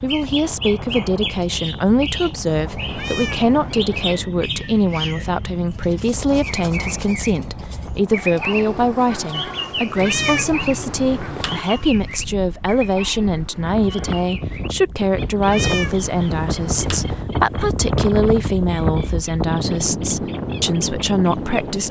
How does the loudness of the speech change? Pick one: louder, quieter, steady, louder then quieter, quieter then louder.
steady.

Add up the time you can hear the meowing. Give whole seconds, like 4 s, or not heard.
5 s.